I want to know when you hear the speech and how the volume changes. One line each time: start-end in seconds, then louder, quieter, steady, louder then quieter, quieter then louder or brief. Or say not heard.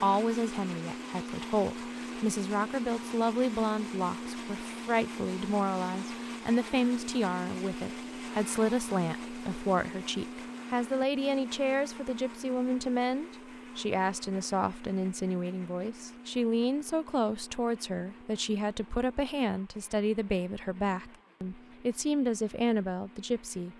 0.0-23.7 steady.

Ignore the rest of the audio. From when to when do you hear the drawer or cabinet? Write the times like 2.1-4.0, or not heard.
not heard.